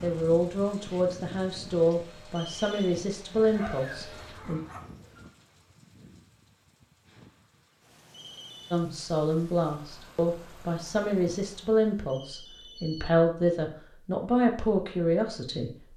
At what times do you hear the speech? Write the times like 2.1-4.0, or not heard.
0.0-4.6, 8.7-15.7.